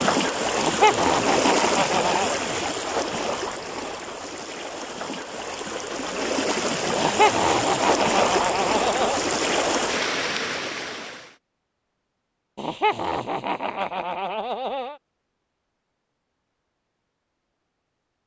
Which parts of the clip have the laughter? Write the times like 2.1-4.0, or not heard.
0.6-2.3, 7.0-9.2, 12.6-14.9.